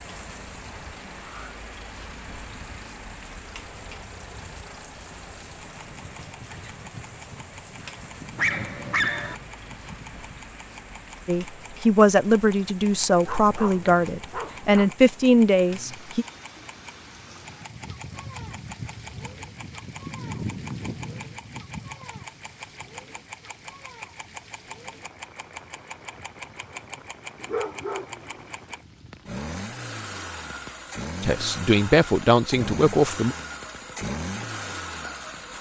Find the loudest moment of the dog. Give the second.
9 s.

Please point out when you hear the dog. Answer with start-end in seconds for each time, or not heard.
8.3-9.3, 13.2-14.9, 27.4-28.2.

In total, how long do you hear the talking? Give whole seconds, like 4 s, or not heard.
7 s.